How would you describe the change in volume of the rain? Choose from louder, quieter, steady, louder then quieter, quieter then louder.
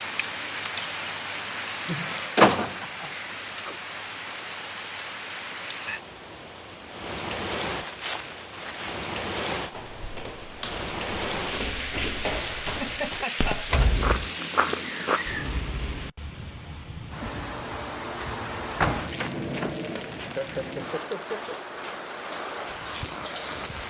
steady.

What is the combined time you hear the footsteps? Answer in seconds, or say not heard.
8 s.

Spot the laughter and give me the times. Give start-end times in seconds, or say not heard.
1.9-3.1, 12.7-13.9, 20.2-21.6.